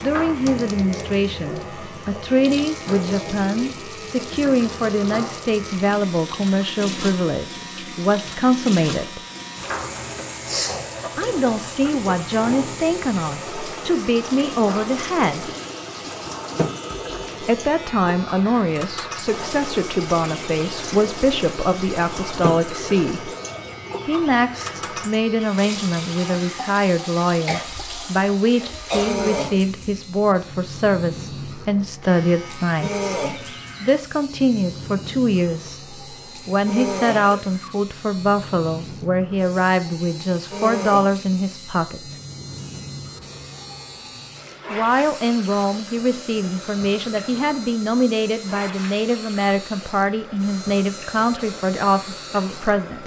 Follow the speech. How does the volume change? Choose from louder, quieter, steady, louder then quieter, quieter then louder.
steady.